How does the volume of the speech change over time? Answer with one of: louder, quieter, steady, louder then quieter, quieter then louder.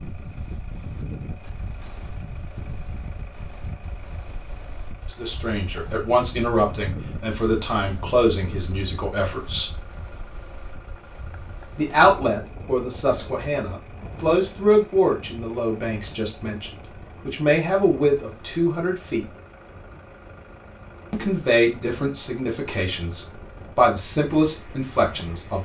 steady.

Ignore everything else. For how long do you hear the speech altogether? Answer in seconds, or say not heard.
17 s.